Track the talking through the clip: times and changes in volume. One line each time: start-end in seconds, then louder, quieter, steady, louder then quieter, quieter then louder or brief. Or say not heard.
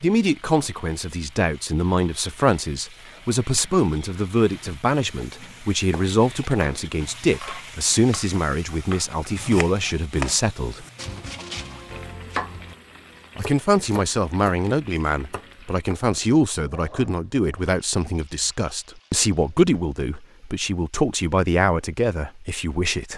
0.0-10.8 steady
13.3-23.1 steady.